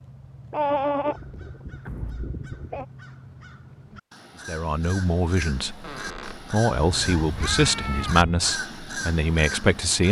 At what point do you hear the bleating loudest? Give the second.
1 s.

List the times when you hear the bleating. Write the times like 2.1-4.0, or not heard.
0.5-2.9, 6.8-8.5.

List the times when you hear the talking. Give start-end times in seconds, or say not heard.
4.5-10.0.